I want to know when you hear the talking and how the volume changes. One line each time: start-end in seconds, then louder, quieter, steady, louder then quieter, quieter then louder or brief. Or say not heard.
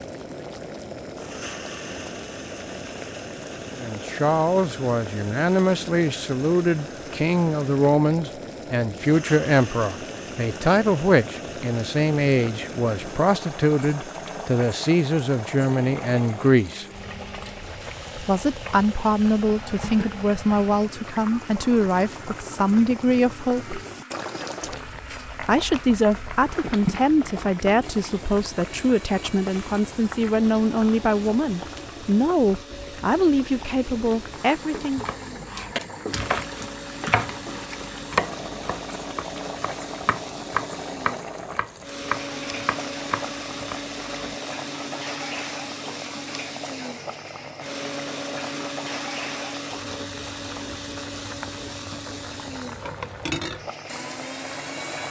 3.8-16.9 steady
18.1-23.8 steady
25.4-35.1 steady.